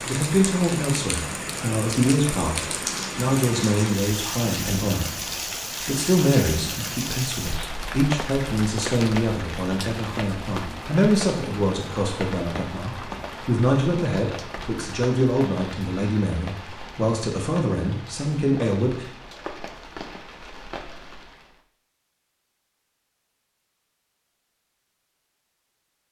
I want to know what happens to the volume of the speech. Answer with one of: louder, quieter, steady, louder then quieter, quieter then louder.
steady.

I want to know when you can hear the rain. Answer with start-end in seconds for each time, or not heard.
0.0-21.6.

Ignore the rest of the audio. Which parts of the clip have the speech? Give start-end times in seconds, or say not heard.
0.0-19.1.